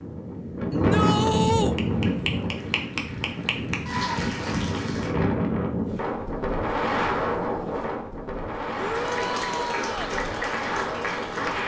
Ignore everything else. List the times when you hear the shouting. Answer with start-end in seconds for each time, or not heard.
0.7-1.8, 8.8-10.2.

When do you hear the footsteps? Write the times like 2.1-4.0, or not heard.
not heard.